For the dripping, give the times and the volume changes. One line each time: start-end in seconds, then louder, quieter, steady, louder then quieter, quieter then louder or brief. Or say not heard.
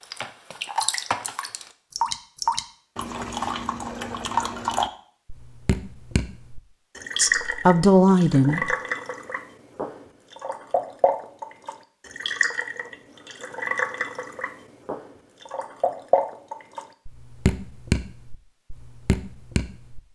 0.0-20.0 steady.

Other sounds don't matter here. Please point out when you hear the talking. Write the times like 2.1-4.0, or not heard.
7.2-8.8.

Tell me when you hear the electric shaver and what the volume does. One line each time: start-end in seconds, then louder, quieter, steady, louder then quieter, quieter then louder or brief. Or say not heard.
not heard.